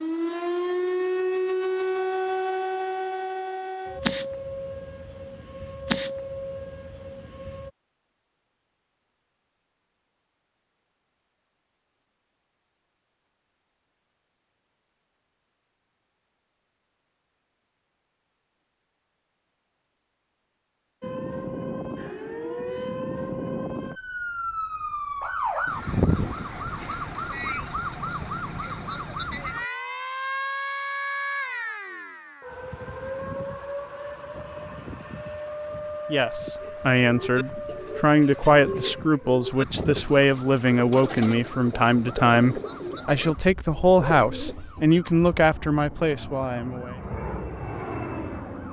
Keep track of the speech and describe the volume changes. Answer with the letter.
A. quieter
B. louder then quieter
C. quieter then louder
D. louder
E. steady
E.